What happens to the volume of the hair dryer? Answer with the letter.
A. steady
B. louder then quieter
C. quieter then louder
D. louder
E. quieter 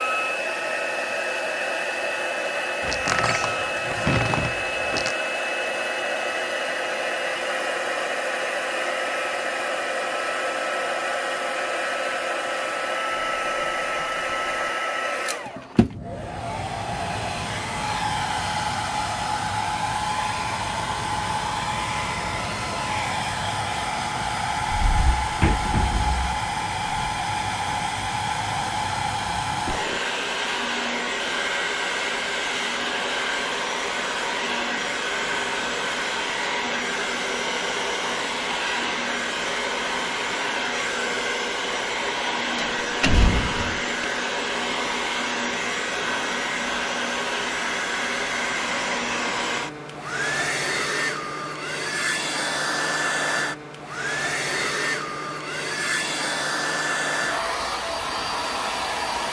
A.